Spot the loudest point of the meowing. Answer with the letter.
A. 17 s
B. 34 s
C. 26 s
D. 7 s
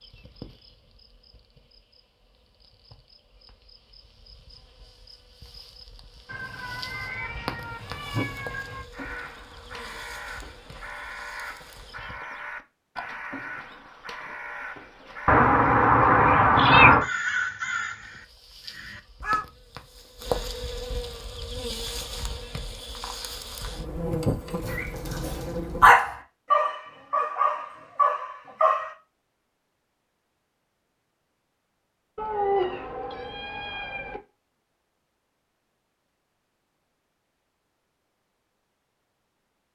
A.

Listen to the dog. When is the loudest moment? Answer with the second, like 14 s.
26 s.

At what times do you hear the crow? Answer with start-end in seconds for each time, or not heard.
8.9-19.4.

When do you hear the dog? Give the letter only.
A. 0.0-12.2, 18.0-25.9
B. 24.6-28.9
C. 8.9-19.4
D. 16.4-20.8
B.